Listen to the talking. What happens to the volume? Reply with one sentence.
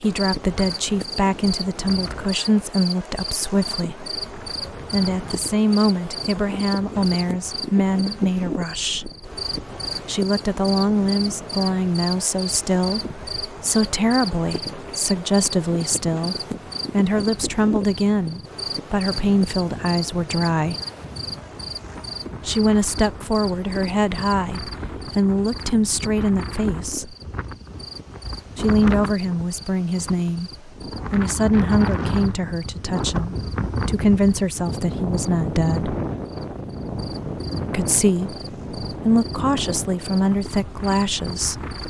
The volume of the talking stays about the same.